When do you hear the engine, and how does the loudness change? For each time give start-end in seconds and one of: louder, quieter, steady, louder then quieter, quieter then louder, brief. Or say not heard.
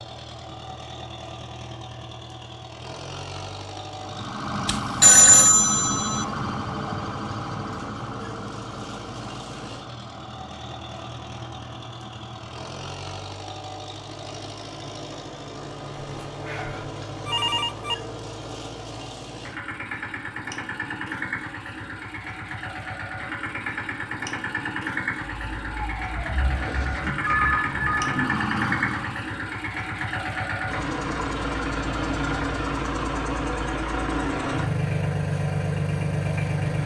0.0-36.8 louder.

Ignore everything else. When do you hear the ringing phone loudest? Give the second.
5 s.